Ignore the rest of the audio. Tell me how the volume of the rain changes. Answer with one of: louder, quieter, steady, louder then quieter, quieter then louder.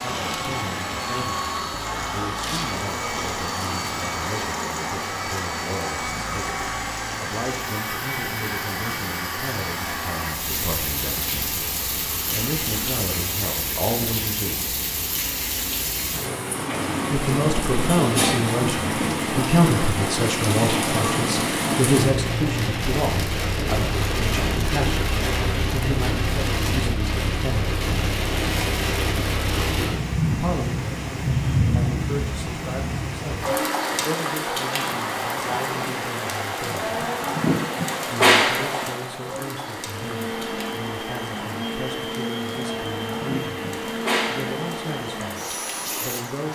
louder.